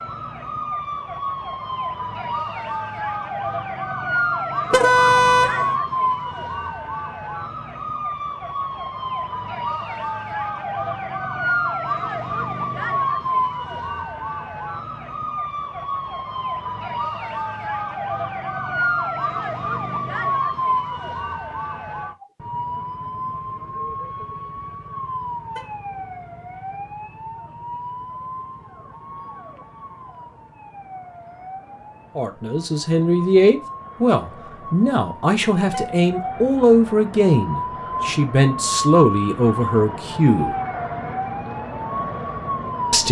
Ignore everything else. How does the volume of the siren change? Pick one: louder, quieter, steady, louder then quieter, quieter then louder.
quieter then louder.